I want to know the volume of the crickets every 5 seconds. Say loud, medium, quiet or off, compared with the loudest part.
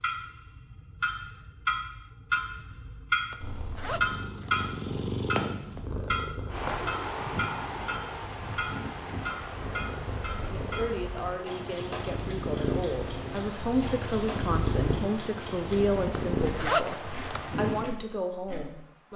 off, loud, medium, loud.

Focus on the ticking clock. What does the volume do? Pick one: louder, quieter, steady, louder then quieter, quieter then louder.
quieter.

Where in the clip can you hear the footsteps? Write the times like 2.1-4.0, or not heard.
not heard.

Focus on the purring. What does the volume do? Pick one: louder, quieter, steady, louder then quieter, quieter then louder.
quieter then louder.